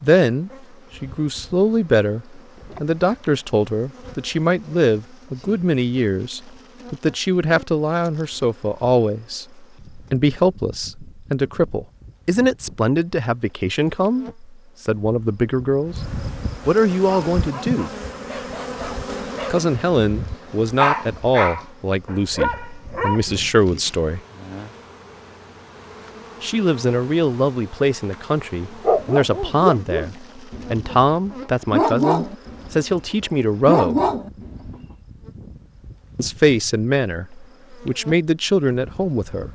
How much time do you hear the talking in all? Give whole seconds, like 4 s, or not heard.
33 s.